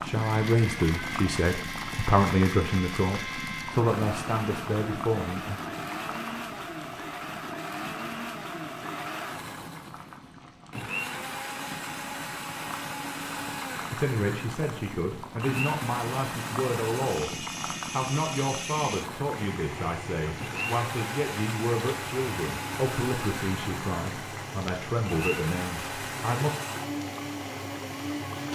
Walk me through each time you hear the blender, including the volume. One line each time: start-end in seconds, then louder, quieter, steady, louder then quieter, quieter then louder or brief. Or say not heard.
0.0-28.5 steady.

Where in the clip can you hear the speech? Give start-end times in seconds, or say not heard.
0.0-5.6, 13.9-26.6.